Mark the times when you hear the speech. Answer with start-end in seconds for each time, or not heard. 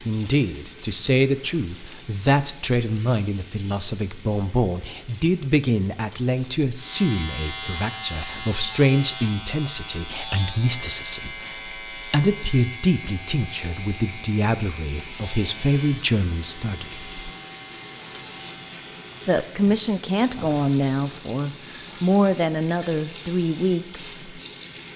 0.1-17.1, 19.2-24.4.